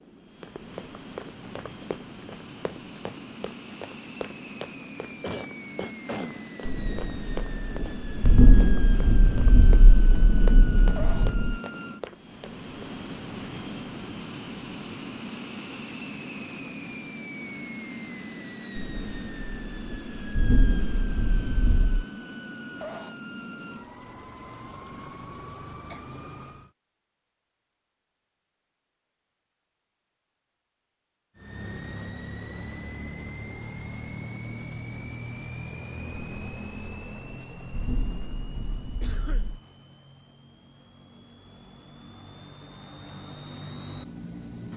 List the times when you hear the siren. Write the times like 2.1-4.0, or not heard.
not heard.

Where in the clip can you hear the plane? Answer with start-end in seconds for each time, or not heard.
0.0-26.7, 31.4-44.7.